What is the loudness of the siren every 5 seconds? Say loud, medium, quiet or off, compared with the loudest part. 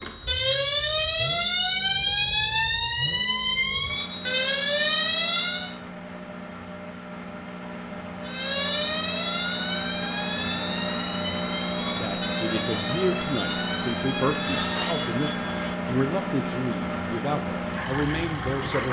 loud, loud, medium, off.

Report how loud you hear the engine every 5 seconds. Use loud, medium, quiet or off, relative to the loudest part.
medium, medium, loud, loud.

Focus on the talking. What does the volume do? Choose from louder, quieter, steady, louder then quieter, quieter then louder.
steady.